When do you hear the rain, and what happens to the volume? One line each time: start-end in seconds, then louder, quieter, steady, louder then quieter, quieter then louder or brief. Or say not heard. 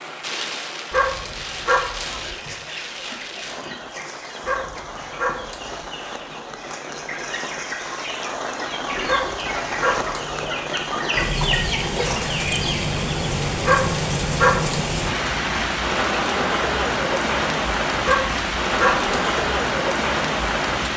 0.0-20.9 louder.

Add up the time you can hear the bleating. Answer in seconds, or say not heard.
not heard.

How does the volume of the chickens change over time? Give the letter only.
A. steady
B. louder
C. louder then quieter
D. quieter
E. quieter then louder
B.